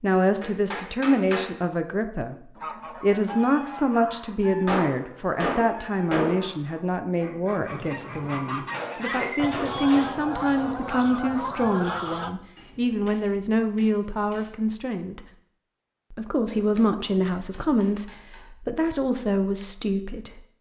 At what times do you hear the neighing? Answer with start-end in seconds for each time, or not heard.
7.7-9.5.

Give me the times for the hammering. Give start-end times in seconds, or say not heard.
0.4-1.5, 4.7-6.5, 8.7-10.1, 12.6-14.6, 16.4-18.5.